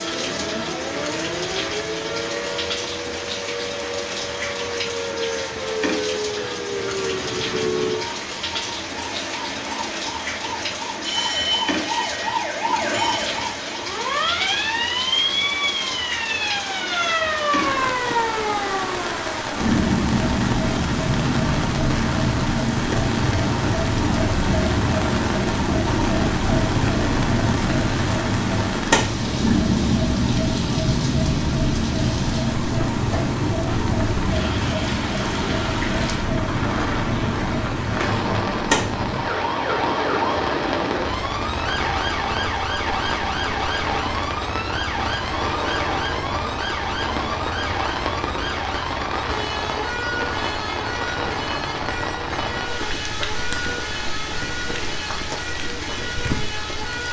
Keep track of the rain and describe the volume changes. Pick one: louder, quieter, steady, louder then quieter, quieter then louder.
steady.